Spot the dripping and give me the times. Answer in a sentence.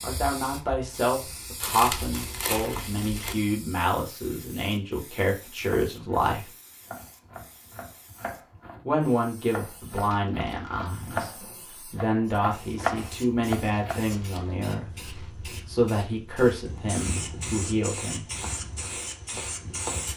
The dripping can't be heard in this clip.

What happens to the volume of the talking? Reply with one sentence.
The volume of the talking stays about the same.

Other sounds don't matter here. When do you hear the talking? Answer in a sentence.
You can hear the talking from 0.0 to 6.5 s and from 8.8 to 18.4 s.